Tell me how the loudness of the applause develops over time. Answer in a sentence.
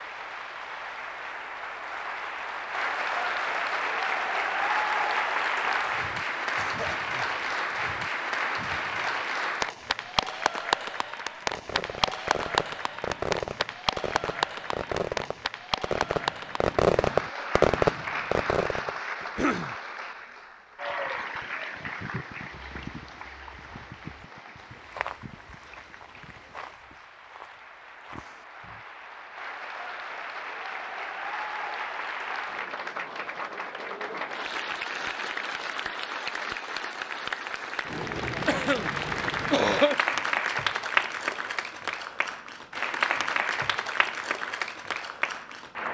The loudness of the applause goes down, then up.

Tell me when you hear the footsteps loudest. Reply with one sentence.
The loudest moment of the footsteps is at 25 seconds.